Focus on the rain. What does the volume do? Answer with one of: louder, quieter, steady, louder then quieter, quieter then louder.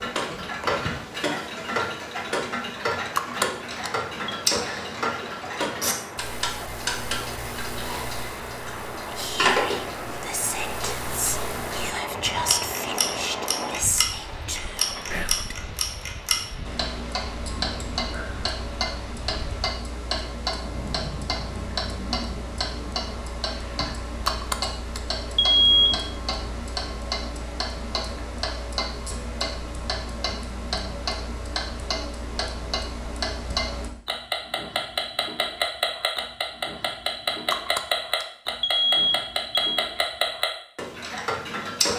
louder then quieter.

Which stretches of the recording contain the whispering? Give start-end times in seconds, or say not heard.
9.0-15.6.